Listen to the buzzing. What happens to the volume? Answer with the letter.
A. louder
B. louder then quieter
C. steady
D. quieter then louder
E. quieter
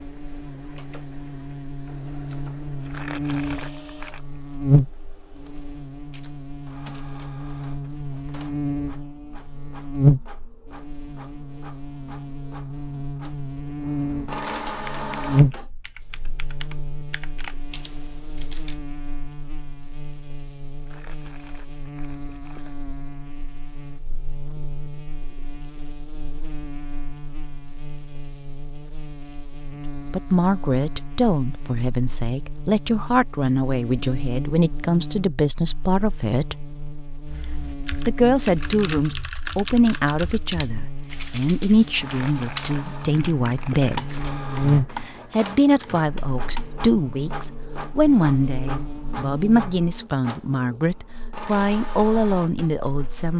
D.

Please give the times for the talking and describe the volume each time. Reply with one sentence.
You can hear the talking from 30.1 to 36.7 s, at a steady volume; and from 38.0 to 53.3 s, at a steady volume.